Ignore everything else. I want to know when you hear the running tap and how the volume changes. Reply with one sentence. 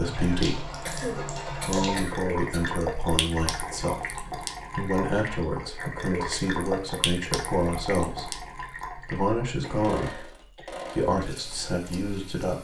You can hear the running tap from 0.0 to 12.5 s, getting quieter.